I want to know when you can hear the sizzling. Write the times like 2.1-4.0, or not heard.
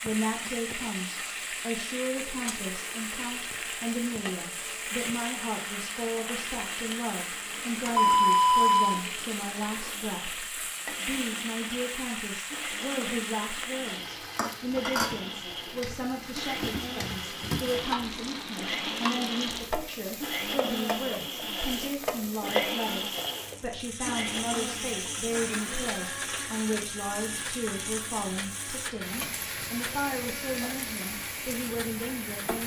0.0-32.6.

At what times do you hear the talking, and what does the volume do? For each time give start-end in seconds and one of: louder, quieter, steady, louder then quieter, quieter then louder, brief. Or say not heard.
0.0-32.6 steady.